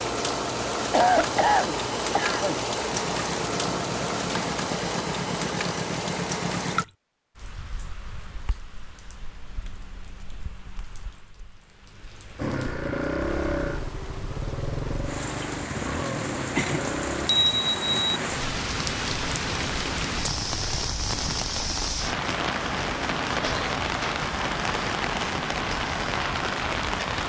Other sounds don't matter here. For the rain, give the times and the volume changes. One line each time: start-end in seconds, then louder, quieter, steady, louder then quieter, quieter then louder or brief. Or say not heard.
0.0-27.2 quieter then louder.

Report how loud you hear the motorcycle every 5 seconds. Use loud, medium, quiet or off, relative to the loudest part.
medium, loud, loud, loud, off, off.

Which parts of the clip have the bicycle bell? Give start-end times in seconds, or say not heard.
16.9-18.2.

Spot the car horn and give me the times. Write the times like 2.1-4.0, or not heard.
not heard.